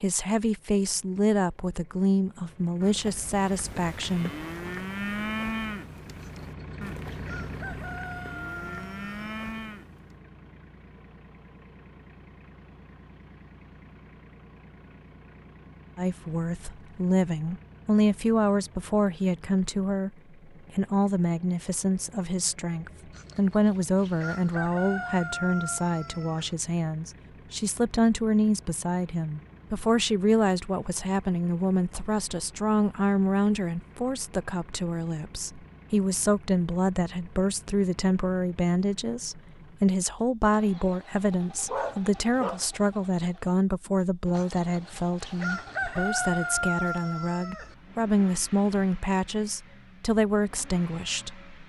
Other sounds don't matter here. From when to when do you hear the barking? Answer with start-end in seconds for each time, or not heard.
41.6-42.6.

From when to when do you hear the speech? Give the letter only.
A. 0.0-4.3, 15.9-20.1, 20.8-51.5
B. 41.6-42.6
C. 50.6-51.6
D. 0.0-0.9
A.